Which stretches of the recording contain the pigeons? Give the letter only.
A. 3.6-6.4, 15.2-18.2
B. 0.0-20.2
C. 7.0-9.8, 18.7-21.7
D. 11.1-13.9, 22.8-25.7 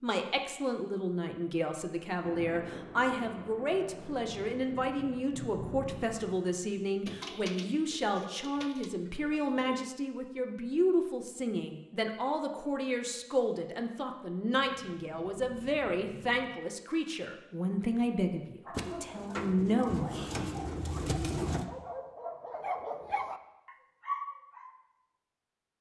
C.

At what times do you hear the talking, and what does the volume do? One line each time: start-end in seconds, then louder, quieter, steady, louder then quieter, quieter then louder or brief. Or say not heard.
0.0-20.2 steady.